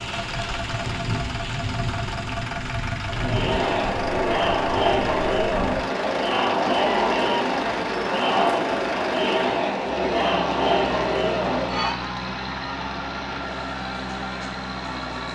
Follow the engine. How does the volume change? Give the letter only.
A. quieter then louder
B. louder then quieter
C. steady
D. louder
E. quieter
C.